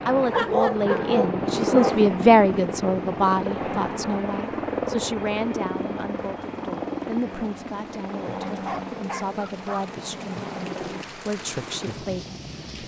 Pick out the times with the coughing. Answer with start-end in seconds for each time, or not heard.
not heard.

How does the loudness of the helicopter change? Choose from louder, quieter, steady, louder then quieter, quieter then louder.
quieter.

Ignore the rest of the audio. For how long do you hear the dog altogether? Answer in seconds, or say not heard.
3 s.